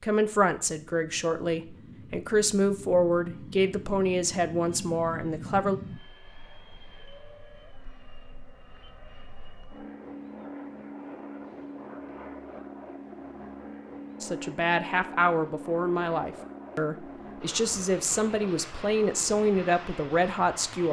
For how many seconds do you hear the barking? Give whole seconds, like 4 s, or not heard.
not heard.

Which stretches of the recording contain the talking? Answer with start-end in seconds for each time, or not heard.
0.0-5.8, 14.2-20.8.